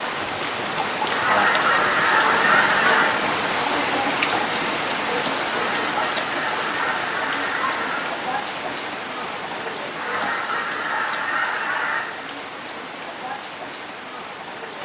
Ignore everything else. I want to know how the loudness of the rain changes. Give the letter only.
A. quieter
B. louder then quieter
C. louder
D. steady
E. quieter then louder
A.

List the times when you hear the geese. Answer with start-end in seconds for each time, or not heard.
1.1-3.1, 5.5-8.2, 9.9-12.1.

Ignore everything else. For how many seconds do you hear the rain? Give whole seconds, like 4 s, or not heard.
15 s.